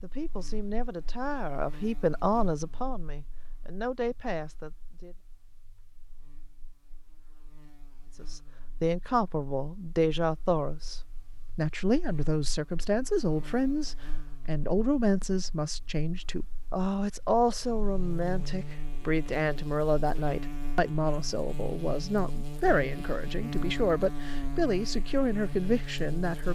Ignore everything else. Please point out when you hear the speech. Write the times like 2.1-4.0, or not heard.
0.0-5.2, 8.2-26.5.